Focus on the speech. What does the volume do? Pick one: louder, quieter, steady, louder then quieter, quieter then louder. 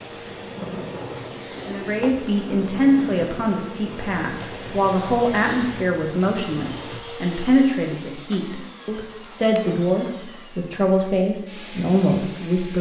steady.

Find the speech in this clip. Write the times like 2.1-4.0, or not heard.
1.6-12.7.